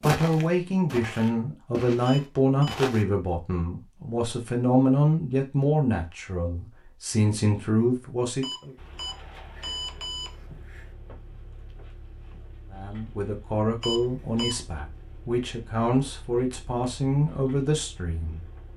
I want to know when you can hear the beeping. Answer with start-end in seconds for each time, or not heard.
2.0-2.8, 8.4-10.9, 13.8-14.6.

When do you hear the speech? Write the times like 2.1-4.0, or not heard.
0.0-8.7, 12.7-18.4.